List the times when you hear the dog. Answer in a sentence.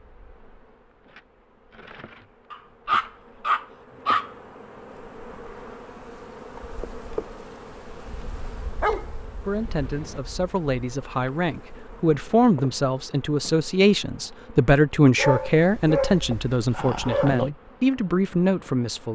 The dog can be heard from 2.5 to 4.3 s, from 8.8 to 10.2 s and from 15.2 to 17.5 s.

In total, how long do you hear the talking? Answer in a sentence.
The talking can be heard for 10 seconds in total.